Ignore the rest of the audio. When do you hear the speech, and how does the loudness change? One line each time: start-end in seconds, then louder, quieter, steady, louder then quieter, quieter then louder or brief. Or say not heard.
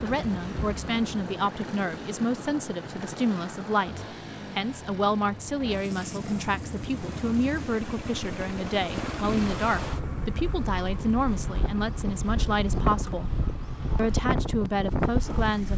0.0-13.3 steady
13.9-15.7 brief.